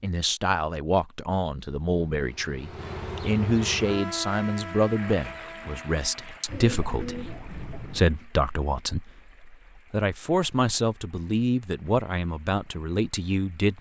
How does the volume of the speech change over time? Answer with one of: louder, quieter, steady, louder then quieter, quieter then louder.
steady.